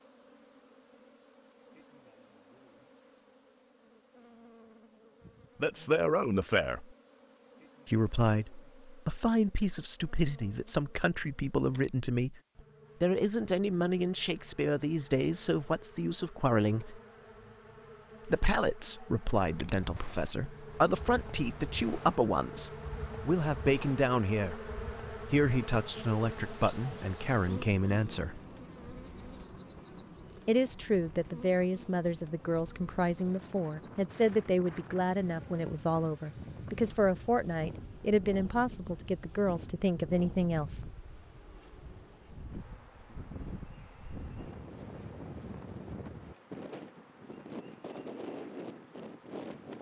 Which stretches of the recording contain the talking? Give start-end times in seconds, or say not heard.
5.6-6.8, 7.8-12.4, 13.0-17.0, 18.2-28.4, 30.4-40.9.